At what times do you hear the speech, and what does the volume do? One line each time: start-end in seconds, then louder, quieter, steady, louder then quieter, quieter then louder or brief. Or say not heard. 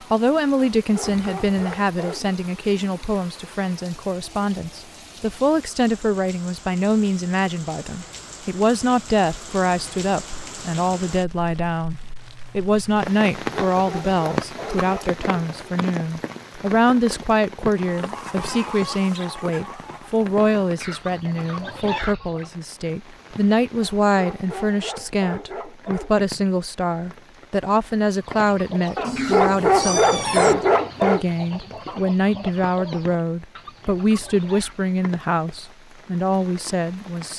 0.1-37.3 steady.